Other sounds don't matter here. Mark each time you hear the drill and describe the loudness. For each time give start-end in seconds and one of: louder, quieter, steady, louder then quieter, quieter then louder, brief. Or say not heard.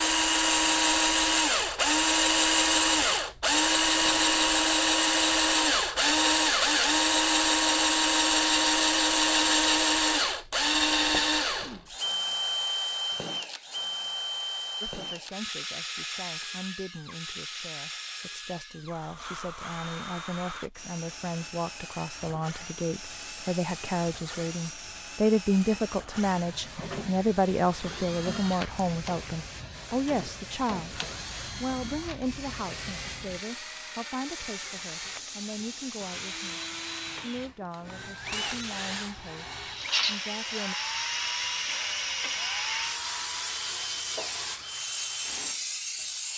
0.0-46.0 quieter.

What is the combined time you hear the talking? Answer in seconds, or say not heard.
26 s.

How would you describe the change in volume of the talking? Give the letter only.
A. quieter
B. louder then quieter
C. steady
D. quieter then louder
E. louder
B.